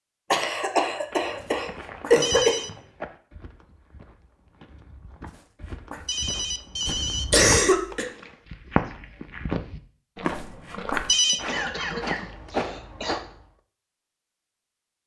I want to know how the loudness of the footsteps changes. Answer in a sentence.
The loudness of the footsteps goes down, then up.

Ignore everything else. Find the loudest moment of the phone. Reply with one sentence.
The loudest moment of the phone is at 11 seconds.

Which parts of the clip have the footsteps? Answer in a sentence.
You can hear the footsteps from 1.1 to 13.3 s.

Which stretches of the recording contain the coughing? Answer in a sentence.
You can hear the coughing from 0.3 to 2.7 s, from 6.8 to 8.1 s and from 11.2 to 13.2 s.